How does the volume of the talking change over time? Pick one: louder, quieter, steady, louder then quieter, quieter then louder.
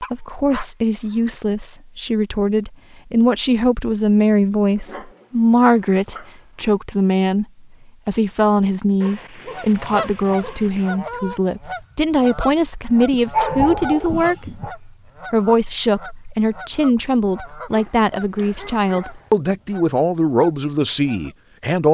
steady.